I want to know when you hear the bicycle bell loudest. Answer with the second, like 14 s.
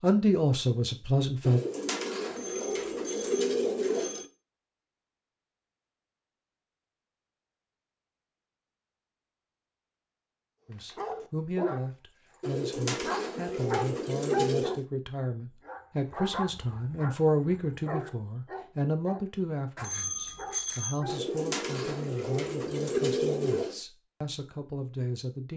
21 s.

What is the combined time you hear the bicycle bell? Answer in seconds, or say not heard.
3 s.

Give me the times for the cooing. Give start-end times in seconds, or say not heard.
1.4-4.2, 12.4-14.8, 21.1-23.8.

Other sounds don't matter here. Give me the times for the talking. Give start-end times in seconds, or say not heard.
0.0-1.6, 10.7-25.5.